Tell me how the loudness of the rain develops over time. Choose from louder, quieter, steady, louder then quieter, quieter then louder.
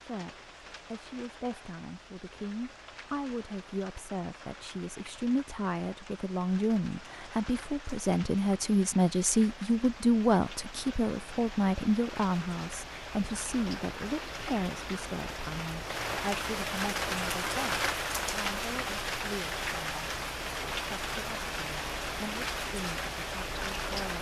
louder.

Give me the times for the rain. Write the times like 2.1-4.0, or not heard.
0.0-24.1.